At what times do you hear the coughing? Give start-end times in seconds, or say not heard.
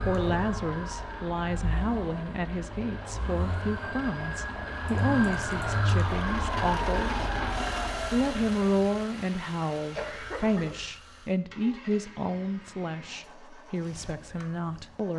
9.9-10.8.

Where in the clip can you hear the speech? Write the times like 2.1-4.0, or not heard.
0.0-7.2, 8.1-15.1.